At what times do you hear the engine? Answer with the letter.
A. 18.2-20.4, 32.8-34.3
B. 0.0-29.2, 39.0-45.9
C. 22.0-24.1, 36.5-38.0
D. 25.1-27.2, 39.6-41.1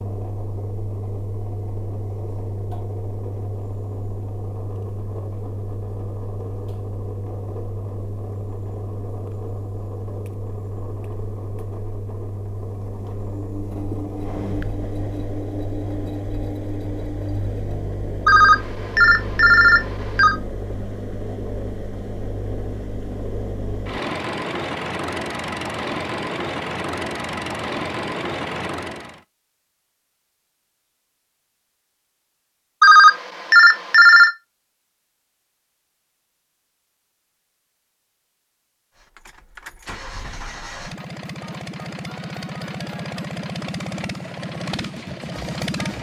B.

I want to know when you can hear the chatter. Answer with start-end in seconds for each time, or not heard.
not heard.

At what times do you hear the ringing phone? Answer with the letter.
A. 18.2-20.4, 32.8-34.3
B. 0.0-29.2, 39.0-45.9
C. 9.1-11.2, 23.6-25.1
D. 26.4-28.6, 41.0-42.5
A.